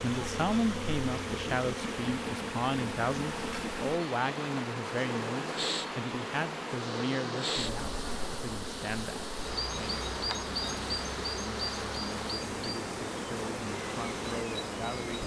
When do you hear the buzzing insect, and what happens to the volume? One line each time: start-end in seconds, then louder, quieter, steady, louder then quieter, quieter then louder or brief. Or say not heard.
0.0-15.2 steady.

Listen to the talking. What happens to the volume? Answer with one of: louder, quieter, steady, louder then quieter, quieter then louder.
quieter.